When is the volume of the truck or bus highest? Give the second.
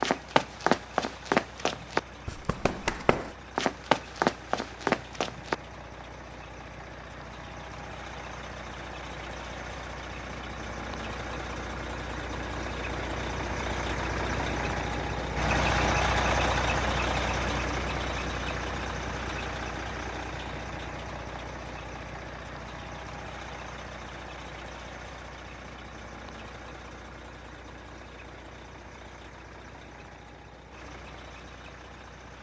16 s.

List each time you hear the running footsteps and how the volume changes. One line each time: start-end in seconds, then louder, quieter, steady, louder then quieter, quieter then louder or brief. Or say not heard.
0.0-5.5 quieter then louder.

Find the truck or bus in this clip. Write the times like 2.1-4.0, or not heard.
0.0-32.3.